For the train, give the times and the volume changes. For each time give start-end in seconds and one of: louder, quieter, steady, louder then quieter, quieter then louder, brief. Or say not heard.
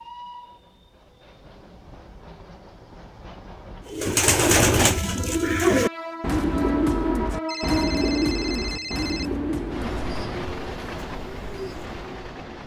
0.0-12.6 louder.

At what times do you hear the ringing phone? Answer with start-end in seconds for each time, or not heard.
7.5-9.3.